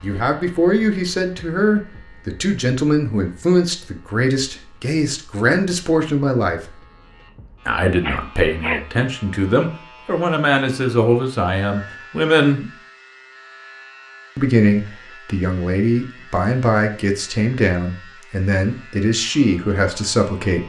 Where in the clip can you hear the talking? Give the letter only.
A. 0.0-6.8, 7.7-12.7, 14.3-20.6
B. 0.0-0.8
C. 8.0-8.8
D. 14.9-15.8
A.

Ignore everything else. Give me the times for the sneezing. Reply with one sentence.
You can hear the sneezing from 8.0 to 8.8 s.